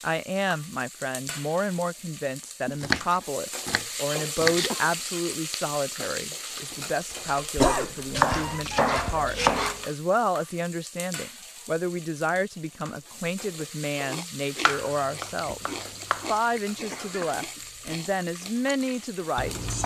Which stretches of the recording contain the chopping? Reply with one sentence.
The chopping can be heard from 2.6 to 4.7 s, from 8.1 to 9.8 s and from 14.7 to 16.2 s.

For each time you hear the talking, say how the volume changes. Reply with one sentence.
You can hear the talking from 0.0 to 19.6 s, at a steady volume.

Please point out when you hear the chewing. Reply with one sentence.
You can hear the chewing from 14.1 to 19.8 s.